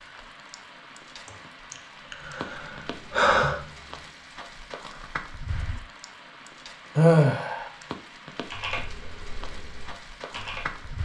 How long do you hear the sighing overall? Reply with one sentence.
You can hear the sighing for 3 seconds altogether.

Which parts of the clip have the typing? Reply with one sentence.
The typing can be heard from 2.0 to 4.2 s and from 8.4 to 11.0 s.